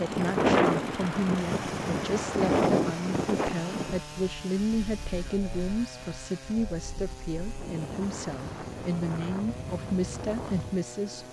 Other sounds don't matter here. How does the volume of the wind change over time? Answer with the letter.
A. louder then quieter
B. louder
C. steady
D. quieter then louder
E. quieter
D.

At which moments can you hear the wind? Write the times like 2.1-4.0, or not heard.
0.0-11.2.